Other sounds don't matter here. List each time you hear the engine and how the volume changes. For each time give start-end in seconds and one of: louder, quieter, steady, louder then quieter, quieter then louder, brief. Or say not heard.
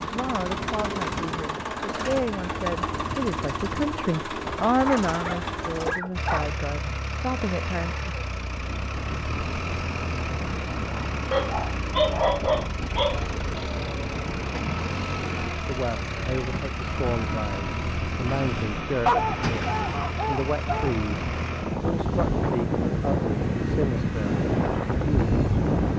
0.0-25.9 quieter.